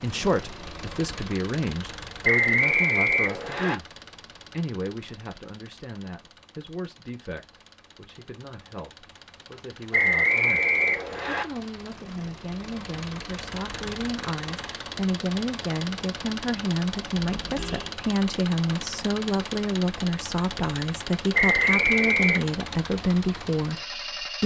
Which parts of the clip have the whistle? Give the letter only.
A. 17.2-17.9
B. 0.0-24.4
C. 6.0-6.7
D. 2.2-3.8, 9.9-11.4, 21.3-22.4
D.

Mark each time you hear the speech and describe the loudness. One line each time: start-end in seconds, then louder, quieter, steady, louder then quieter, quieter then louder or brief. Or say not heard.
0.0-24.4 quieter then louder.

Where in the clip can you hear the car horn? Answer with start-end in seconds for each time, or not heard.
17.2-17.9.